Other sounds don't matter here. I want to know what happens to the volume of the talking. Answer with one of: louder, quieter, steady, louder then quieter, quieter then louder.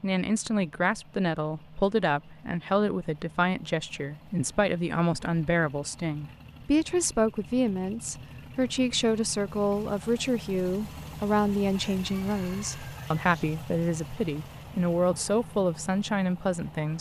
steady.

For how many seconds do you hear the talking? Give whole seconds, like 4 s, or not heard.
17 s.